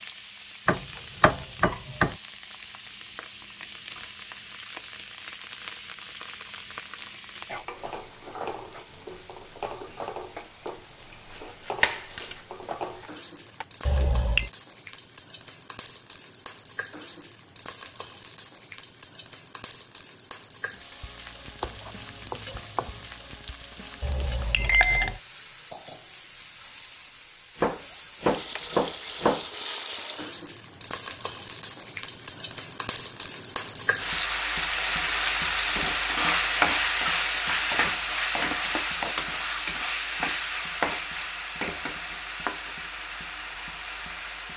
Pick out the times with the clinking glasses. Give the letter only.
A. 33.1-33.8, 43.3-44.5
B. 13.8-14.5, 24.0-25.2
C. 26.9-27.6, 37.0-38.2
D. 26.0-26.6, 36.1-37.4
B.